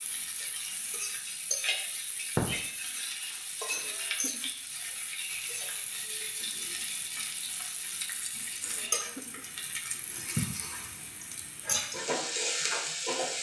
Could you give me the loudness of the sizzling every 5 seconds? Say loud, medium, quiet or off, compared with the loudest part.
loud, medium, loud.